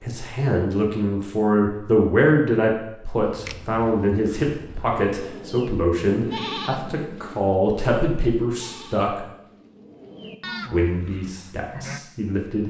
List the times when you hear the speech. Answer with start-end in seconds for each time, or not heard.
0.0-9.2, 10.7-12.6.